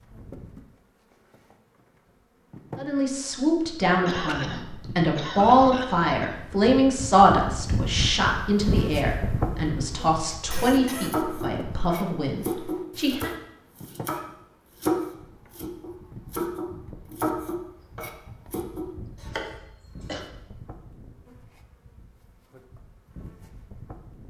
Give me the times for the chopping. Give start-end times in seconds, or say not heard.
11.0-19.5.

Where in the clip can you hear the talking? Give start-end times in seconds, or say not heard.
2.8-13.3.